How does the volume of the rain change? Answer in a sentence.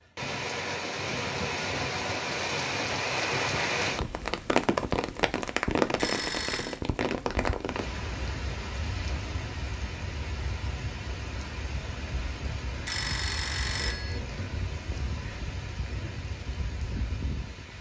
The volume of the rain goes down.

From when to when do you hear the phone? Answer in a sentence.
The phone can be heard from 6.0 to 6.8 s and from 12.8 to 14.2 s.